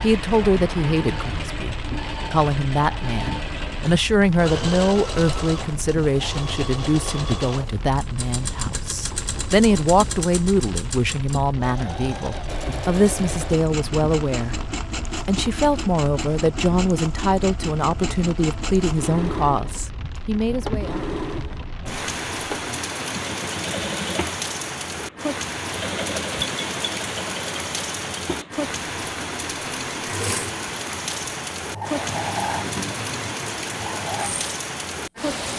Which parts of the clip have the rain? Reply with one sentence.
The rain can be heard from 0.2 to 35.5 s.